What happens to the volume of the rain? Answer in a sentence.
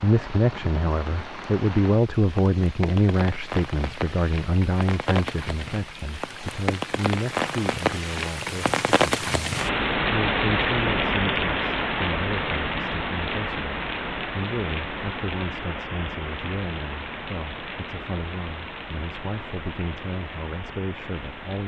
The volume of the rain goes up, then down.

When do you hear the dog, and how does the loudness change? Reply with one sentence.
You can't hear the dog here.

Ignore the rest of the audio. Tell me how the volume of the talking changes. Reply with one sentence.
The volume of the talking goes down.